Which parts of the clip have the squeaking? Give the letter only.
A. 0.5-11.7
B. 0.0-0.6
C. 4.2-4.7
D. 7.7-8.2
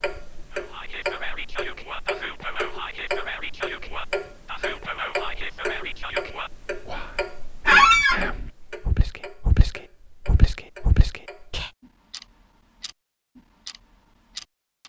D.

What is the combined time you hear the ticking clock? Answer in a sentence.
You can hear the ticking clock for 15 seconds altogether.